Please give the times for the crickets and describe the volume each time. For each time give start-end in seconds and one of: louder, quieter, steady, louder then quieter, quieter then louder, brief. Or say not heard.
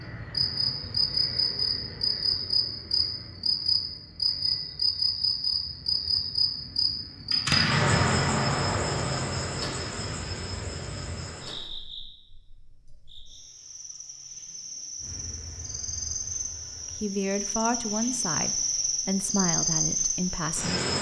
0.3-20.9 quieter then louder.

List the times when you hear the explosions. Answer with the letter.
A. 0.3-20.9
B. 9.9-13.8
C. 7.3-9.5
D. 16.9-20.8
C.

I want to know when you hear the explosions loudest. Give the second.
8 s.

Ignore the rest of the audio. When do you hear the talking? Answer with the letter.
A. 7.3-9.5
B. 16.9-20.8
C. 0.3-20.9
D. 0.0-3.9
B.